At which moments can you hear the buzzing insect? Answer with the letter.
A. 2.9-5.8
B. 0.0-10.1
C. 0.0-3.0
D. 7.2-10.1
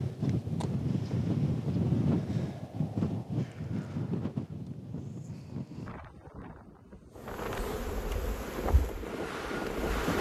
D.